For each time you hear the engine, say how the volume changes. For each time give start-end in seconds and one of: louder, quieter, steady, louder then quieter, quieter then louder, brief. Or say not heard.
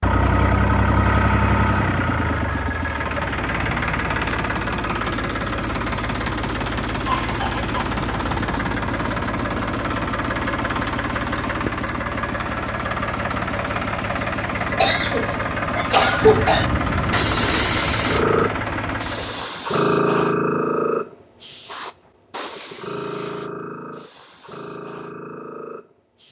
0.0-19.5 steady.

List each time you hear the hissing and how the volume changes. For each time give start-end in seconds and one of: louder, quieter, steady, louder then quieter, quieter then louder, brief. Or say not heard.
16.2-26.2 quieter.